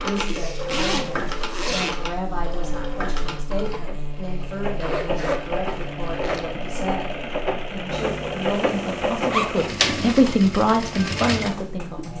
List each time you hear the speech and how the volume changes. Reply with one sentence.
You can hear the speech from 0.0 to 12.1 s, getting louder.